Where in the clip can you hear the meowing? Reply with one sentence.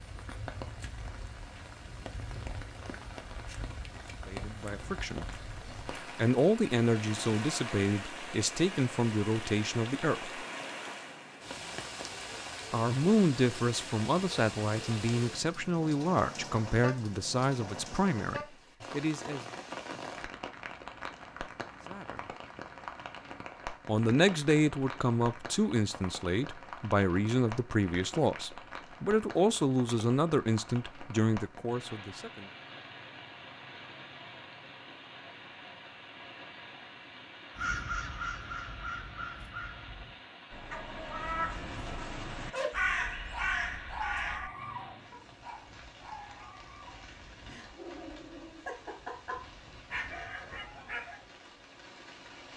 The meowing can't be heard in this clip.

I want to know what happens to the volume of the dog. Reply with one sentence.
The volume of the dog goes down, then up.